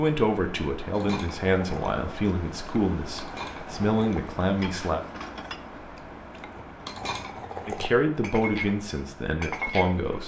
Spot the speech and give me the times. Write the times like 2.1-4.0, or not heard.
0.0-5.0, 7.7-10.2.